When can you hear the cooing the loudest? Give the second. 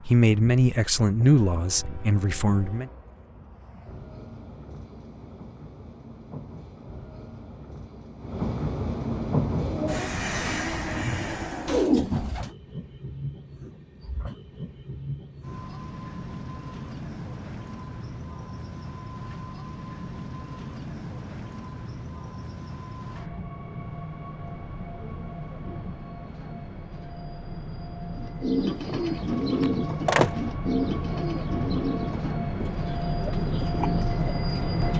12 s.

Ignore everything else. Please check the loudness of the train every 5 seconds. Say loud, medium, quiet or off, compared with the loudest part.
quiet, loud, medium, medium, medium, medium, loud.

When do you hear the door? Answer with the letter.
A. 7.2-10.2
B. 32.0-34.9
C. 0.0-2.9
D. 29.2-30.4
D.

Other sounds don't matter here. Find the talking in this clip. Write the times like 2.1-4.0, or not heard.
0.0-2.9.